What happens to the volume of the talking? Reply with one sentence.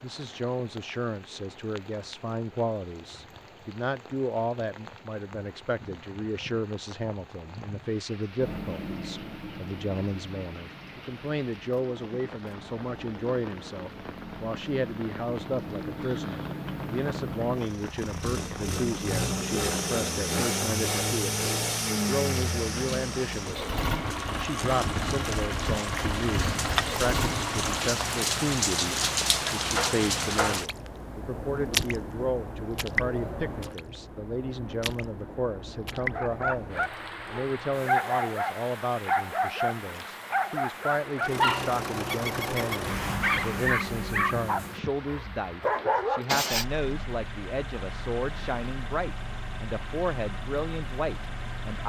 The volume of the talking stays about the same.